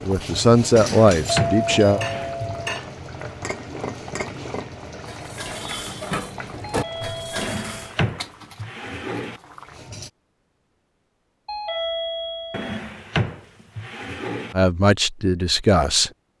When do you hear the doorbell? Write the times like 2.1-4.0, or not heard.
1.2-2.8, 6.7-8.0, 11.4-12.8.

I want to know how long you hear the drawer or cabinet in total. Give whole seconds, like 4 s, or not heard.
6 s.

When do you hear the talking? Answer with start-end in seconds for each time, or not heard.
0.0-2.0, 14.5-16.1.